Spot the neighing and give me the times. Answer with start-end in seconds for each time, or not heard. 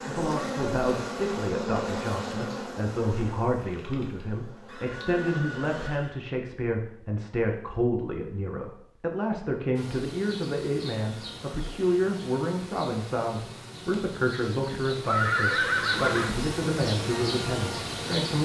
4.7-6.2, 14.7-16.4.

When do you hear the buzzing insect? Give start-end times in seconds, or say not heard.
0.0-5.9, 9.8-18.4.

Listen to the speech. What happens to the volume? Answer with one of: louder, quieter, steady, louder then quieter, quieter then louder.
steady.